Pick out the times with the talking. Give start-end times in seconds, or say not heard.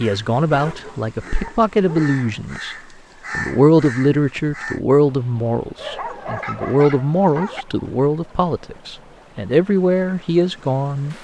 0.0-2.8, 3.4-11.1.